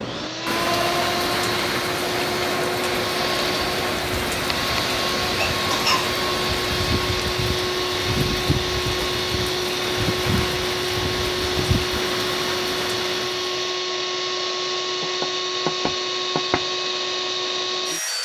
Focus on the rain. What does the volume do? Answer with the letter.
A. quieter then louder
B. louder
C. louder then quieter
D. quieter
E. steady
E.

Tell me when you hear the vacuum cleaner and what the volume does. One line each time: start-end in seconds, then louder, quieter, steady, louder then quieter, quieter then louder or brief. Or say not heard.
0.0-18.2 steady.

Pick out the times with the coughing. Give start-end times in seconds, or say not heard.
5.3-6.1.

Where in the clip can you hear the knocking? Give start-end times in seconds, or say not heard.
15.0-16.6.